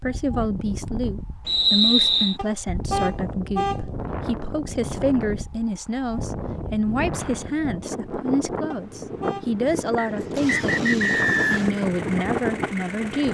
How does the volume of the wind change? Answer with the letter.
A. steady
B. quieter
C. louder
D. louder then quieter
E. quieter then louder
C.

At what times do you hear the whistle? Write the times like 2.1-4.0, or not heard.
1.4-2.4, 9.9-11.7.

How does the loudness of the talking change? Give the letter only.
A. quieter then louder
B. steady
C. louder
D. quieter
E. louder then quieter
B.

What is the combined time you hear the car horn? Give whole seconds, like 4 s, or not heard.
2 s.